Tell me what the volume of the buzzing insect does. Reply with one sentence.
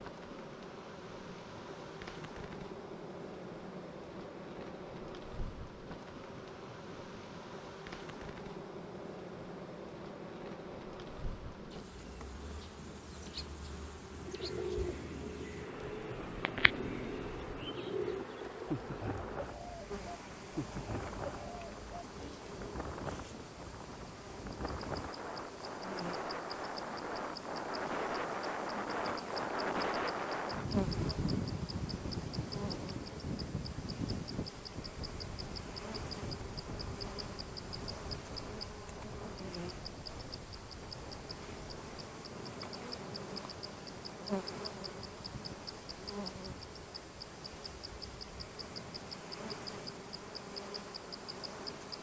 The volume of the buzzing insect stays about the same.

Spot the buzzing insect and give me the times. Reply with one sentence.
The buzzing insect can be heard from 0.0 to 51.9 s.